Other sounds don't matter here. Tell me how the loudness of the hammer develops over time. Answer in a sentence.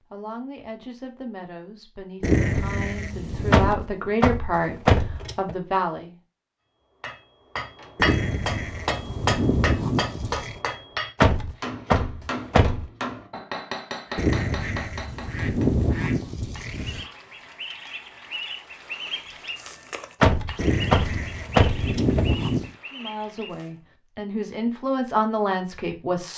The loudness of the hammer goes down.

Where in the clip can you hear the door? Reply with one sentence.
The door can be heard from 3.5 to 5.5 s, from 11.2 to 12.8 s and from 20.2 to 22.2 s.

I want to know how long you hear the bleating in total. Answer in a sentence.
The bleating can be heard for 9 seconds in total.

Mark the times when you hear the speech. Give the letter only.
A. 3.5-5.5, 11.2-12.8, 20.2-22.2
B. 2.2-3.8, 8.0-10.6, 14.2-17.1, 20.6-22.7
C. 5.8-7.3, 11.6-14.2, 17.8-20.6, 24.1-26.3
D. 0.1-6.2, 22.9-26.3
D.